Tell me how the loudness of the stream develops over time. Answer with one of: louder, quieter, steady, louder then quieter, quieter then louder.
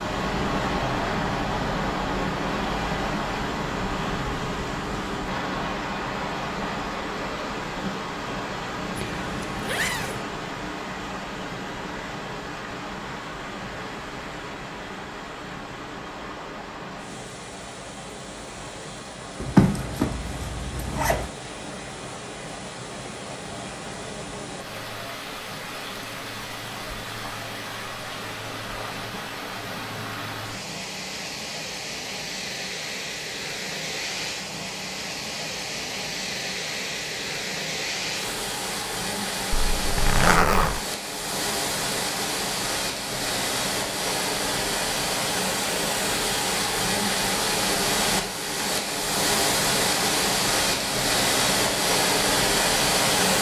quieter then louder.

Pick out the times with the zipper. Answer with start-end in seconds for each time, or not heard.
8.9-10.2, 19.4-21.3, 39.5-40.8.